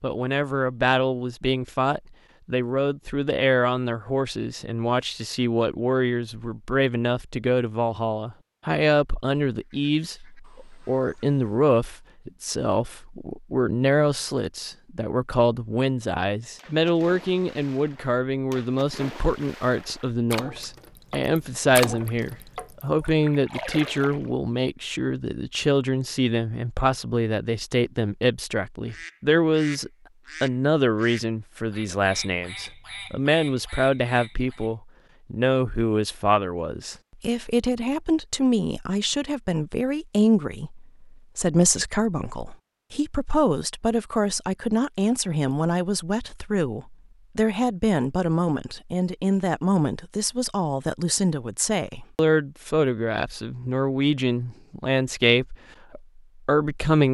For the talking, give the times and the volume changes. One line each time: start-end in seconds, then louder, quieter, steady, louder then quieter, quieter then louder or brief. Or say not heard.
0.0-57.0 steady.